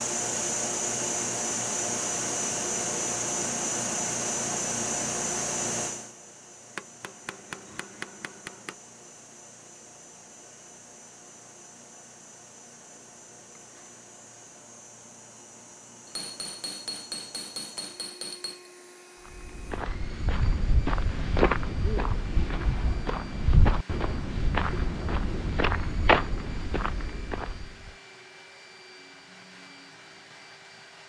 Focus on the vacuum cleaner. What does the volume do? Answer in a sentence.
The volume of the vacuum cleaner goes down.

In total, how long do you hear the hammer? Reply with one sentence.
The hammer can be heard for 5 seconds in total.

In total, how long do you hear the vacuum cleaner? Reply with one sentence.
You can hear the vacuum cleaner for 31 seconds altogether.